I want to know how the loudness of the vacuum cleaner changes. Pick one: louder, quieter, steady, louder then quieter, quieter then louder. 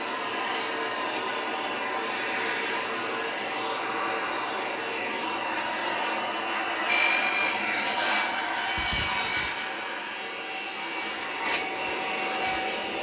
steady.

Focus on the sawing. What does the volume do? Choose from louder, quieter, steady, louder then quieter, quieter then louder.
quieter.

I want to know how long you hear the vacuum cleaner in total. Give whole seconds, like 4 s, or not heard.
13 s.